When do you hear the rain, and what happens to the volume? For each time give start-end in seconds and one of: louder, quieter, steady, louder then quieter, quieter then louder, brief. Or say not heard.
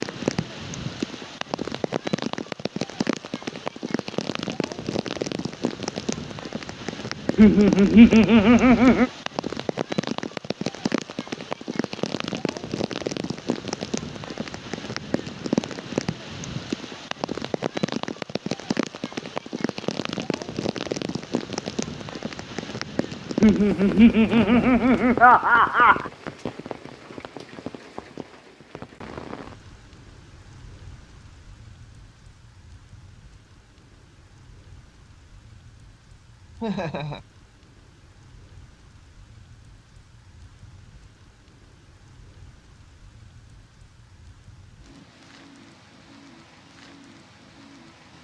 0.0-48.1 quieter.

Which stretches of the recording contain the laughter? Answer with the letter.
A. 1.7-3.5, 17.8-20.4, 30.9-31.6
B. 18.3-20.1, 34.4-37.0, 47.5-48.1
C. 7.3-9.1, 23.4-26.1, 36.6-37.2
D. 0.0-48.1
C.